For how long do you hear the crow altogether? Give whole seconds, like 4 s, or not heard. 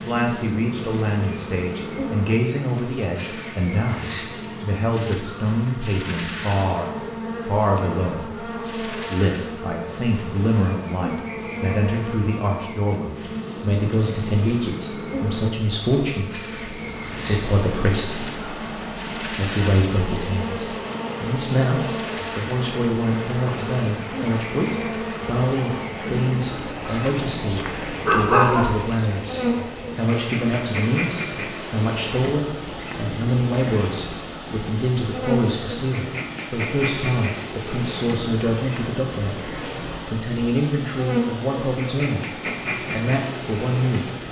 not heard.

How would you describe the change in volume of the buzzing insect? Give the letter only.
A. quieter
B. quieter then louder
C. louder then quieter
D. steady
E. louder
D.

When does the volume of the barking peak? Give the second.
28 s.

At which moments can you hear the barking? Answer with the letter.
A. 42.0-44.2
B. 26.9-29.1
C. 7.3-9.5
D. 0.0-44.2
B.